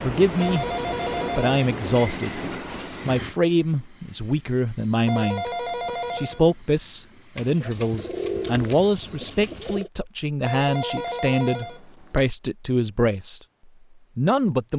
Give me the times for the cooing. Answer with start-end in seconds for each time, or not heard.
7.3-9.9.